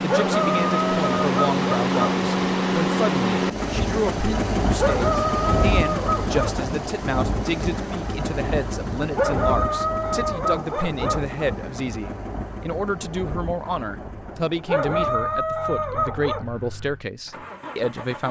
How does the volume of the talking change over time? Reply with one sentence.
The loudness of the talking stays about the same.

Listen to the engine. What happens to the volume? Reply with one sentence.
The loudness of the engine goes down.